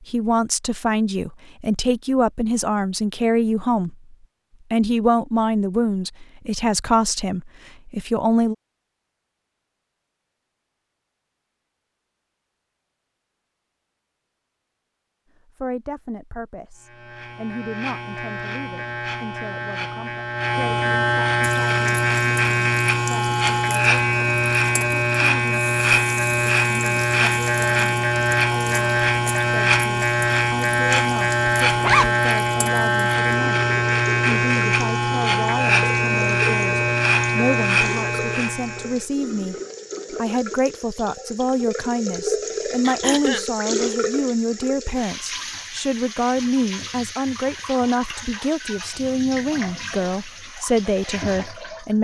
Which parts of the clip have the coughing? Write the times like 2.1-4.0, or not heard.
42.9-43.5.